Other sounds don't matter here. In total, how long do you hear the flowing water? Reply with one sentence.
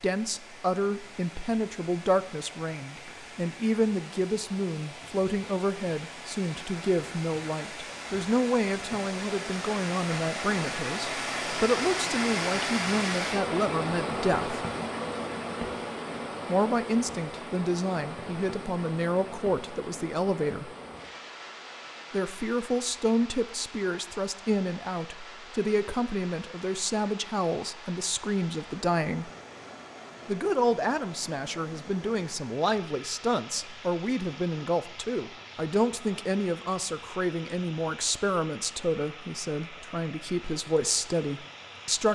The flowing water can be heard for 42 seconds in total.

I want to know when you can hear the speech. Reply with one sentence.
The speech can be heard from 0.0 to 14.6 s, from 16.4 to 20.7 s, from 22.1 to 29.3 s and from 30.2 to 42.1 s.